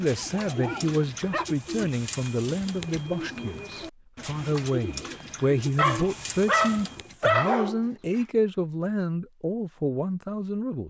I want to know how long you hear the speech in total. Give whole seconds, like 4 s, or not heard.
11 s.